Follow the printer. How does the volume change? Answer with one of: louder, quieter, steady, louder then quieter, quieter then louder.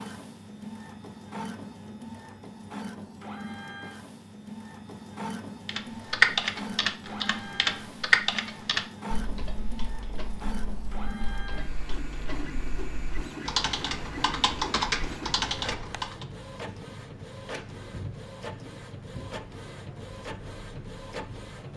steady.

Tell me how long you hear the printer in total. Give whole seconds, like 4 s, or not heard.
22 s.